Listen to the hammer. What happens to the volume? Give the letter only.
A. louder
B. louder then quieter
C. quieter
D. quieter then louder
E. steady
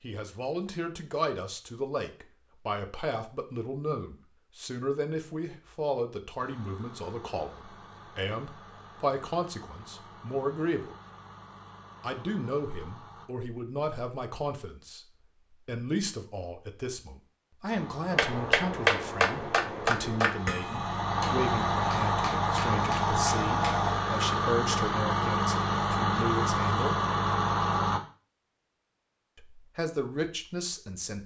C.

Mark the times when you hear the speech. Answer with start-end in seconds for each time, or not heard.
0.0-10.9, 12.0-27.1, 29.4-31.2.